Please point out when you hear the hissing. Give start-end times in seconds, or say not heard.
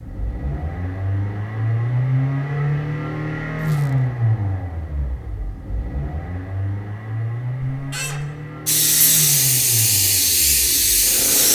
8.7-11.5.